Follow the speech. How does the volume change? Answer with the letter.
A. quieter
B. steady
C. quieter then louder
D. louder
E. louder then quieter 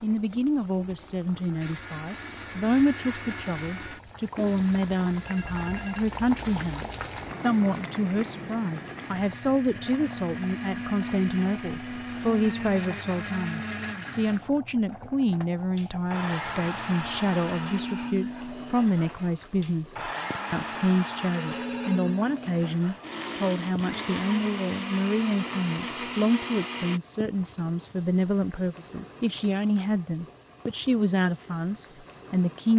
B.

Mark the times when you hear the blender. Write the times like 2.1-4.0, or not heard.
1.6-27.0.